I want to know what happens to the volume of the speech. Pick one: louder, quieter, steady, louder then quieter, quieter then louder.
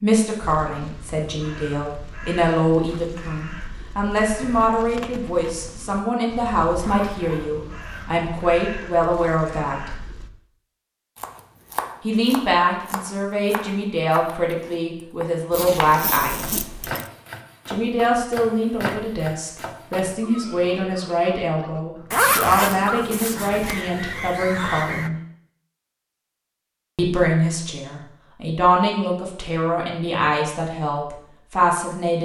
steady.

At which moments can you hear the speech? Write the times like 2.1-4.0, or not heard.
0.0-9.9, 12.0-16.6, 17.6-25.1, 26.9-32.1.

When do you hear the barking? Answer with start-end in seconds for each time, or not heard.
not heard.